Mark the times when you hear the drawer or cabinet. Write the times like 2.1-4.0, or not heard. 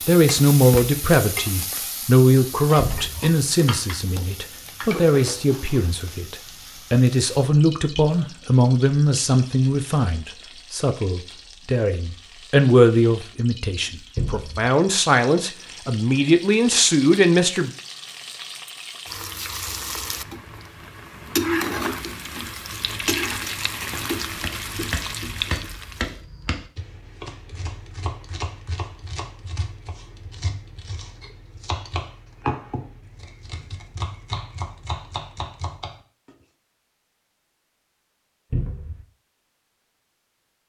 2.8-3.3, 14.2-14.7, 38.5-39.0.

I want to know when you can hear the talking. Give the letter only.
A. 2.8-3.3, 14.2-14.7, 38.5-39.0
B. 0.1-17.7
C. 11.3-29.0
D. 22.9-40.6
B.